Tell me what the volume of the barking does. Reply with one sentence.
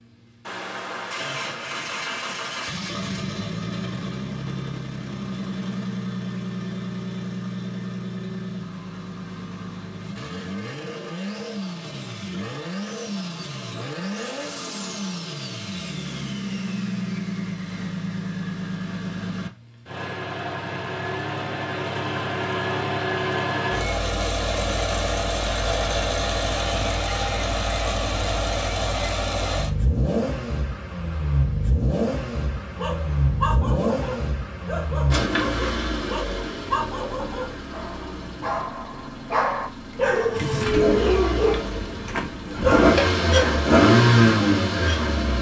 The volume of the barking goes up.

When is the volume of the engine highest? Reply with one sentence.
The loudest moment of the engine is at 44 seconds.